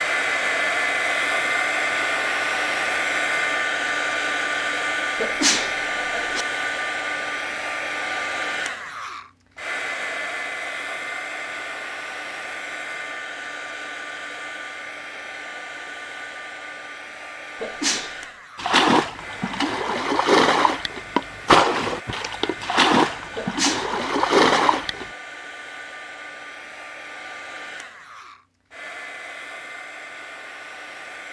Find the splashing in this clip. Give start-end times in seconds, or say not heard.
18.6-25.1.